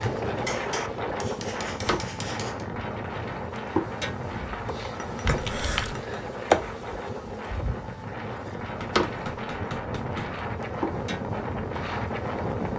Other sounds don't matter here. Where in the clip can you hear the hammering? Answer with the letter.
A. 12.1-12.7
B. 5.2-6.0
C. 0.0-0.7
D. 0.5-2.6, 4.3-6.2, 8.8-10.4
D.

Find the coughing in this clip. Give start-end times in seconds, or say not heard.
5.2-6.0.